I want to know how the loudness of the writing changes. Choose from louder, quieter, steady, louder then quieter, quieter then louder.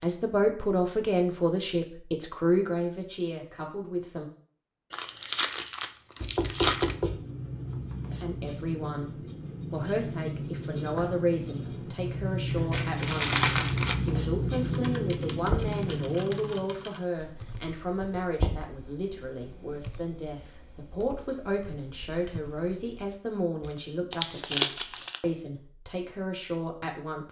louder.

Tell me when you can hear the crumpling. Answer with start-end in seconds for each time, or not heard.
4.9-7.0, 12.7-13.9, 24.1-25.2.